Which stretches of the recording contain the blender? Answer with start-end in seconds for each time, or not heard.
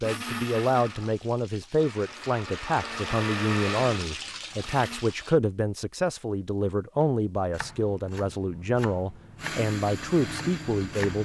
0.0-5.0, 9.3-11.2.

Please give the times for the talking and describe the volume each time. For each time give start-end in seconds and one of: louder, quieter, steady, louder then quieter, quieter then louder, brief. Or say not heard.
0.0-11.2 steady.